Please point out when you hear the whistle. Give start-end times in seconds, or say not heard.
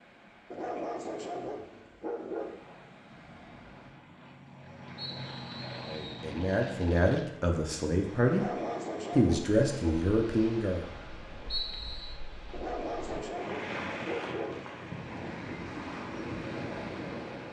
5.0-6.2, 11.5-12.2.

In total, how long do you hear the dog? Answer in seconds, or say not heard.
6 s.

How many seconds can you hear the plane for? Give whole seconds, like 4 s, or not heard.
5 s.